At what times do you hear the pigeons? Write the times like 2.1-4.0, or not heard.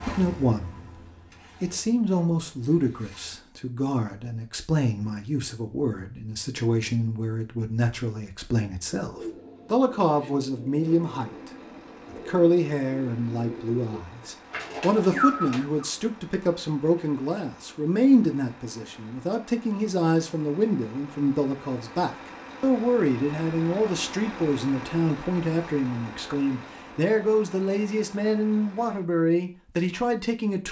8.8-15.9.